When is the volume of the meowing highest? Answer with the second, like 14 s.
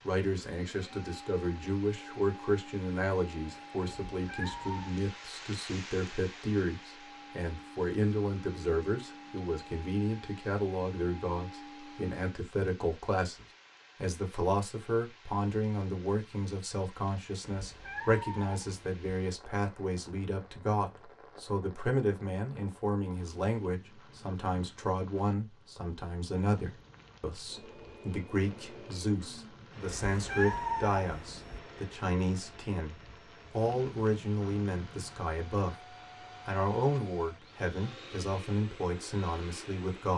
31 s.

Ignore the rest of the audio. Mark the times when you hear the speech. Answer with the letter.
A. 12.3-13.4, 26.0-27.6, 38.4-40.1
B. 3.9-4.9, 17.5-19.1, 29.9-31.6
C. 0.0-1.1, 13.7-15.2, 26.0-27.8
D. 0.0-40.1
D.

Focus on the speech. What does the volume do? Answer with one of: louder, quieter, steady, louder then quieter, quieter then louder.
steady.